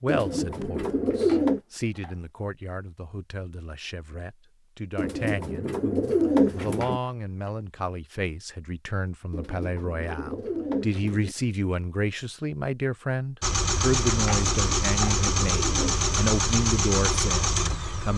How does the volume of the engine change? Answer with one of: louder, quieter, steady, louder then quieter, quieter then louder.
steady.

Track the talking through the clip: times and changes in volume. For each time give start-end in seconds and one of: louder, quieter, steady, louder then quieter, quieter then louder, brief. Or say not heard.
0.0-18.1 louder.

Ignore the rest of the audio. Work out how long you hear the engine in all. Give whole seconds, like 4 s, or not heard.
5 s.